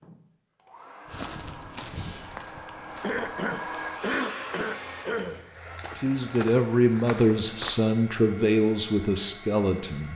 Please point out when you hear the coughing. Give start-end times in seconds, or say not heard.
3.0-5.5.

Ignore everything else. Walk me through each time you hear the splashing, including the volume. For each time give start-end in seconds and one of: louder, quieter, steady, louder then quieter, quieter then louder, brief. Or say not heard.
not heard.